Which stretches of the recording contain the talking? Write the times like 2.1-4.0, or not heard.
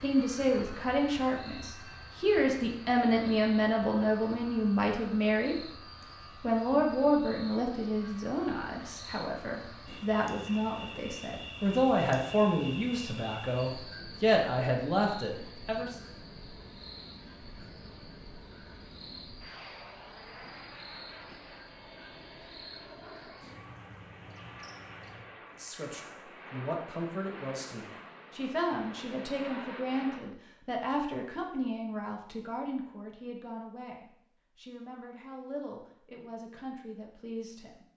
0.0-5.7, 6.4-15.9, 25.6-37.8.